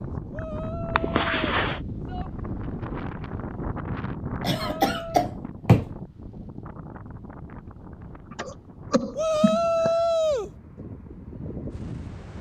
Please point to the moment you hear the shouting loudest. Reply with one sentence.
The volume of the shouting peaks at 10 seconds.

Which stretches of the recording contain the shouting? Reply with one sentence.
The shouting can be heard from 0.3 to 2.3 s, from 4.5 to 5.2 s and from 9.2 to 10.5 s.